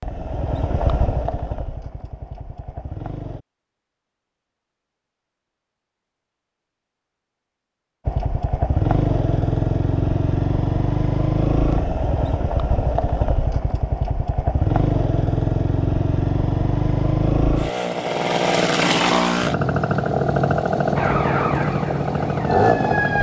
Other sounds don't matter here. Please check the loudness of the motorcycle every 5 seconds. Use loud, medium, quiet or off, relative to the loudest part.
medium, loud, loud, loud, loud.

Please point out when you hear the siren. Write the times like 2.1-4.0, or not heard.
20.9-23.1.